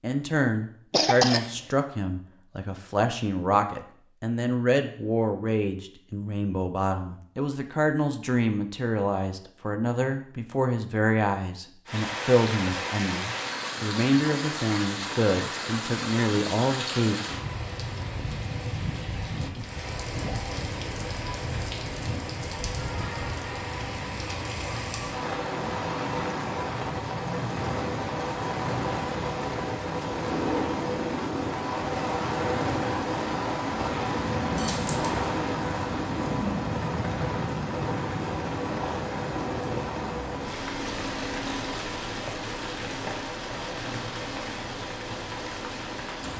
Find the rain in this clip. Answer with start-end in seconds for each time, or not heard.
11.8-46.3.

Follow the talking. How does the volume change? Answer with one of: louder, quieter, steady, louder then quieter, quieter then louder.
steady.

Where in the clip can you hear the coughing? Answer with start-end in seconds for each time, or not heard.
0.9-1.6.